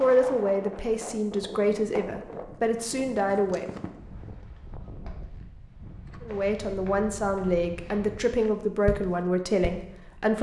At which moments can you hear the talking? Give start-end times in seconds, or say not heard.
0.0-3.7, 6.2-10.3.